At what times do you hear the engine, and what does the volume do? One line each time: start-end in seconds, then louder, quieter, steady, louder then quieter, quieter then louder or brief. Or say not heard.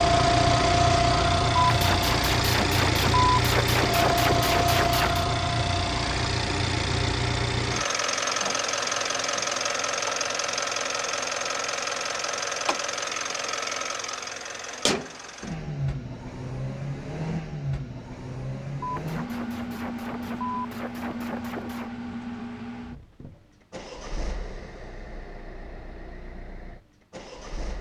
0.0-27.7 quieter.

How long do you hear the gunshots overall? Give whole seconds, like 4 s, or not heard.
7 s.